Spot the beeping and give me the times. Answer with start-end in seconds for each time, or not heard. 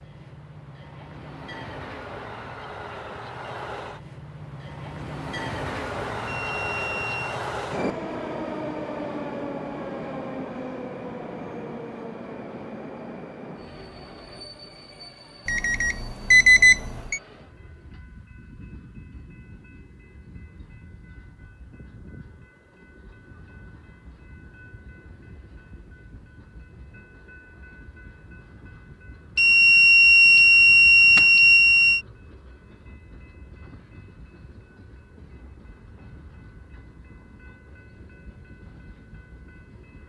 6.2-7.4, 15.4-17.2, 29.4-32.0.